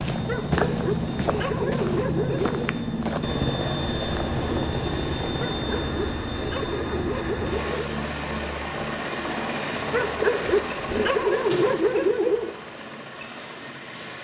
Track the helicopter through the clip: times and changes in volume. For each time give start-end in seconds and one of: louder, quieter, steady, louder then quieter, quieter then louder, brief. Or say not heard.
0.0-14.2 quieter.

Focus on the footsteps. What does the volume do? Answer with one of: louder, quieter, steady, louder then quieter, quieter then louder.
quieter.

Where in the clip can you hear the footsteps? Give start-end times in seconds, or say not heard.
0.0-4.4.